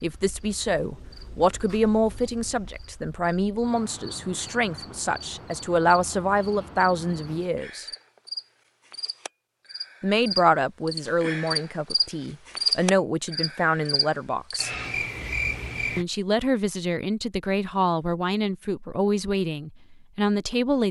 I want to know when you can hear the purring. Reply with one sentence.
The purring can't be heard in this clip.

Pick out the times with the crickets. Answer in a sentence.
The crickets can be heard from 0.0 to 16.1 s.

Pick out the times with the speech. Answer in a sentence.
You can hear the speech from 0.0 to 7.8 s, from 10.0 to 14.7 s and from 15.9 to 20.8 s.